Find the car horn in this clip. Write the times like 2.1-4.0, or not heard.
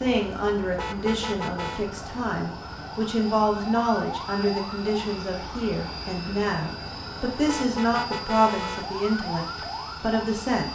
0.8-1.9, 7.5-8.9.